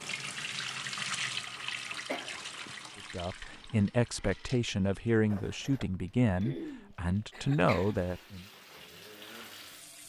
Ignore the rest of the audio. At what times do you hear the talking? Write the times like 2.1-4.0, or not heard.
3.0-8.4.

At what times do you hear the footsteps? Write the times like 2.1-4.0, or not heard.
not heard.